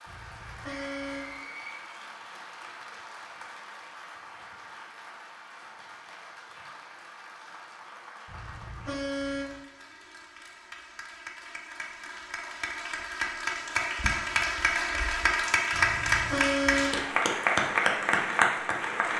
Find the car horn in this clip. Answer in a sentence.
The car horn can be heard from 0.1 to 1.4 s, from 8.2 to 9.6 s and from 15.7 to 17.0 s.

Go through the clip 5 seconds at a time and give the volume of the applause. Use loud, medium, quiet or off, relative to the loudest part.
quiet, quiet, medium, loud.